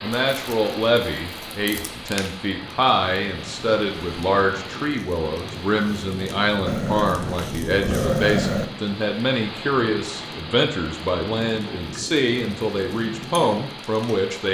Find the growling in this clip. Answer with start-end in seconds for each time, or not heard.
6.7-8.7.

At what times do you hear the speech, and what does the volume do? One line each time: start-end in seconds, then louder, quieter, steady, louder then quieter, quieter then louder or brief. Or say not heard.
0.0-14.4 steady.